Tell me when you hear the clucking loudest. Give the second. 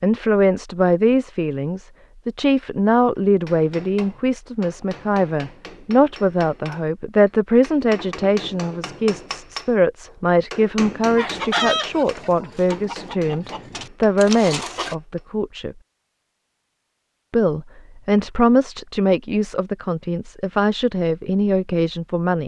12 s.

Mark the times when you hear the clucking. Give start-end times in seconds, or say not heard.
11.2-14.9.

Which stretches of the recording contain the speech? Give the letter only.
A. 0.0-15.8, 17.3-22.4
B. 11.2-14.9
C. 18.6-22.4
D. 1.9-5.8
A.